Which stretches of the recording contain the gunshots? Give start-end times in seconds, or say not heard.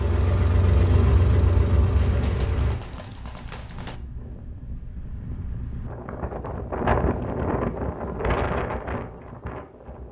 1.9-4.0.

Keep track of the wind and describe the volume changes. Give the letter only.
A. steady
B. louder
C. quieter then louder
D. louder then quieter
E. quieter
B.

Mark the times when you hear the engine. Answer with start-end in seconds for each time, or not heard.
0.0-2.8.